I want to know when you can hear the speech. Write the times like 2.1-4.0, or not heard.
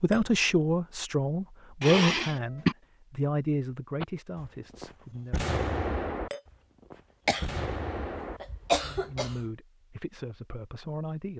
0.0-5.5, 8.9-11.3.